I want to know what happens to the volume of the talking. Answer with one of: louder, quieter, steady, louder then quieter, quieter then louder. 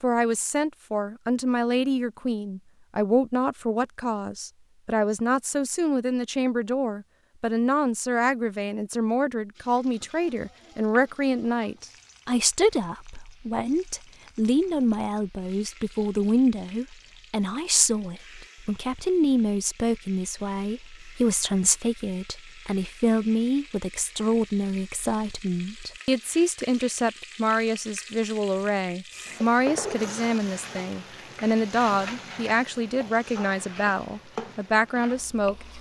steady.